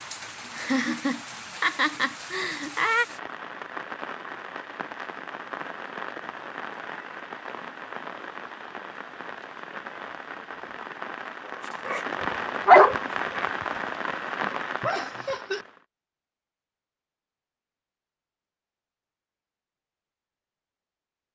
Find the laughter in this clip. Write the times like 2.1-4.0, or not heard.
0.6-3.0, 14.8-15.7.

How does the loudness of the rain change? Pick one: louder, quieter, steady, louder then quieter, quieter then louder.
louder.